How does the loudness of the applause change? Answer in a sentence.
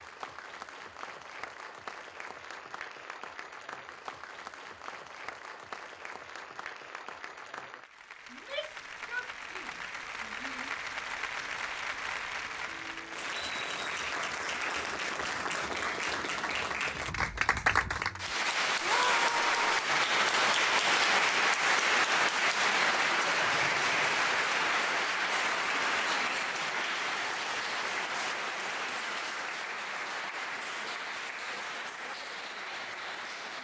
The volume of the applause goes up, then down.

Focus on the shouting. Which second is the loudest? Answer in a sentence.
The loudest moment of the shouting is at 19 seconds.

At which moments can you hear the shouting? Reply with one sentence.
The shouting can be heard from 8.3 to 10.7 s and from 18.8 to 19.9 s.